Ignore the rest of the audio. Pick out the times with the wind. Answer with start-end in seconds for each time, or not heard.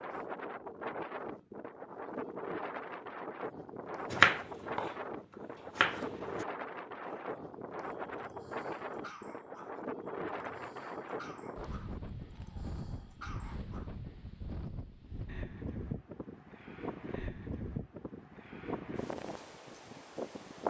0.0-20.6.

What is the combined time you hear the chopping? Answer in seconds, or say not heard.
2 s.